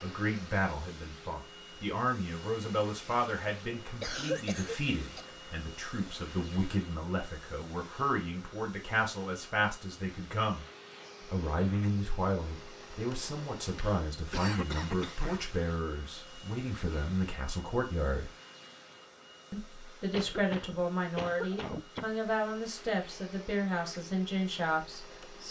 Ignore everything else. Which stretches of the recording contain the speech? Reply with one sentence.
The speech can be heard from 0.0 to 10.7 s, from 11.2 to 18.3 s and from 19.5 to 25.4 s.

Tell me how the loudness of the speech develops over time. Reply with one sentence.
The loudness of the speech stays about the same.